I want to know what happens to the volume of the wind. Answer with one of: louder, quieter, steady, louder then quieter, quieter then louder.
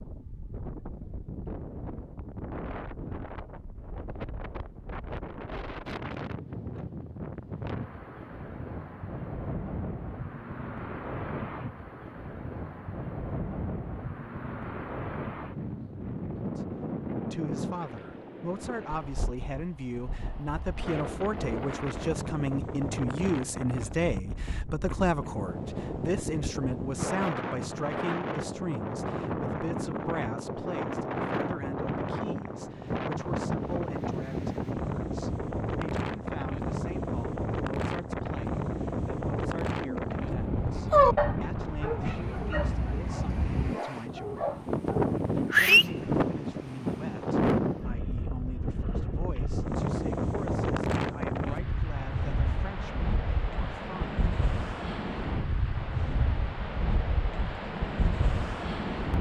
louder.